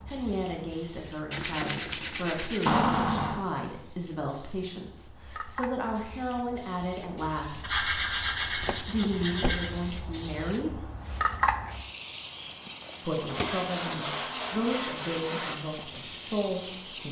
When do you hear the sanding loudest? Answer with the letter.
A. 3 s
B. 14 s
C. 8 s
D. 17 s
C.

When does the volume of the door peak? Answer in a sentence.
The volume of the door peaks at 3 seconds.